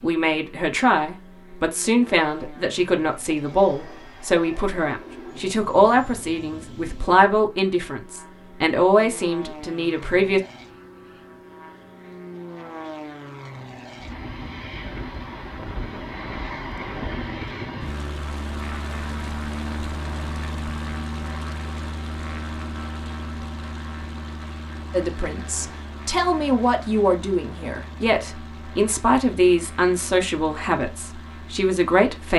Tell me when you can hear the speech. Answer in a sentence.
You can hear the speech from 0.0 to 10.4 s and from 24.9 to 32.3 s.